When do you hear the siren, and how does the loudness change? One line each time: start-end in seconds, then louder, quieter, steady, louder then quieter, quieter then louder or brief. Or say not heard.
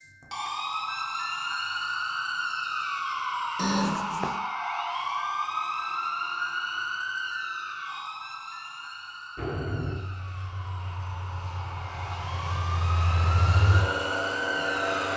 0.0-15.1 quieter then louder.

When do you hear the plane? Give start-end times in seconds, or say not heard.
9.3-15.1.